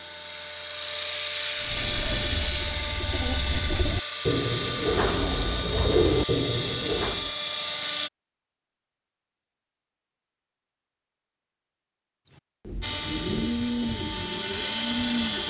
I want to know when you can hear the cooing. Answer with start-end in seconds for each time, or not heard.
1.6-7.3, 12.7-15.4.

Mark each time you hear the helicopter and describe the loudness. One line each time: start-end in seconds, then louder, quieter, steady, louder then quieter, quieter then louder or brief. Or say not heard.
0.0-8.1 steady
12.8-15.4 brief.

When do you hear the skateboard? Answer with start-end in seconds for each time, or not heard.
not heard.